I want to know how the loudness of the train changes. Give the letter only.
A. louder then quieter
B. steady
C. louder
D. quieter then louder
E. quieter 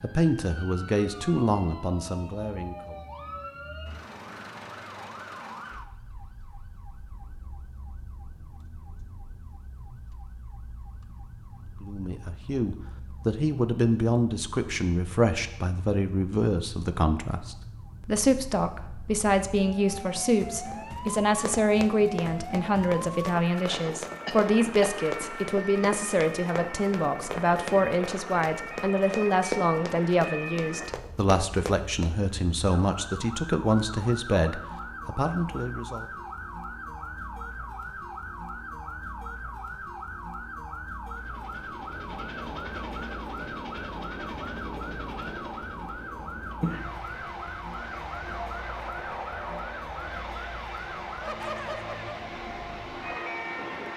B.